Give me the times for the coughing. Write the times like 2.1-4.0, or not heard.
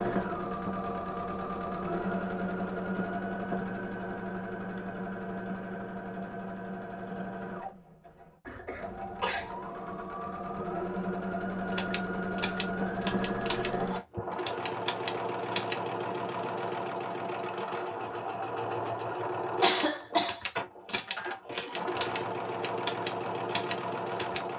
8.4-9.5, 19.6-20.4.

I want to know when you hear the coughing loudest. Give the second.
20 s.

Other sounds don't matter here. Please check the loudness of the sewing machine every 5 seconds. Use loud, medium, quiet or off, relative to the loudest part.
loud, medium, loud, loud, loud.